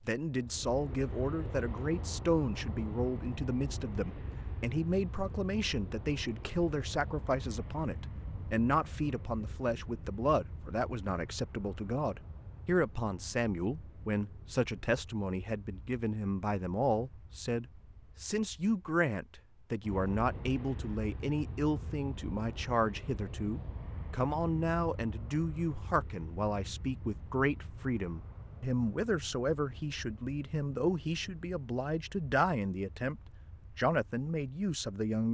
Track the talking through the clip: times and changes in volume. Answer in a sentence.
The talking can be heard from 0.1 to 35.2 s, at a steady volume.